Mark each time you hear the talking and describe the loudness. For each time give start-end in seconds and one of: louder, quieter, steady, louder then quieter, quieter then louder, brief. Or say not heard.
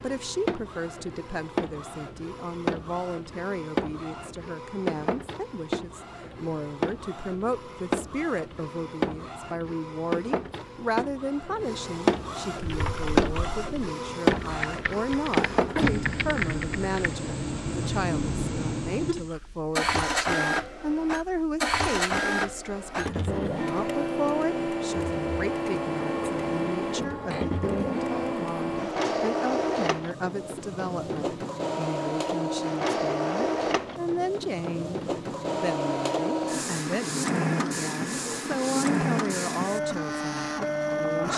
0.0-41.3 steady.